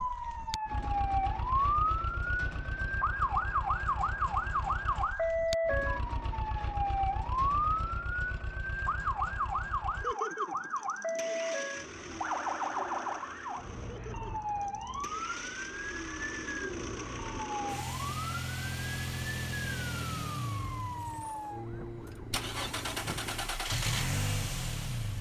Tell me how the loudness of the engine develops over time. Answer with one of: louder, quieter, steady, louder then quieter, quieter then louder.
louder.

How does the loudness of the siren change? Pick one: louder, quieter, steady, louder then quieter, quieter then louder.
quieter.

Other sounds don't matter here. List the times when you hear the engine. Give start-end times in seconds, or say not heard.
0.0-25.1.